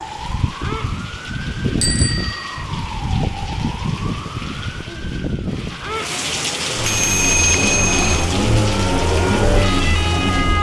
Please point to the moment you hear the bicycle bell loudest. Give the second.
7 s.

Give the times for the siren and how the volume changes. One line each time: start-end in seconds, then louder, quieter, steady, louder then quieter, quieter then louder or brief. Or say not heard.
0.0-10.5 quieter then louder.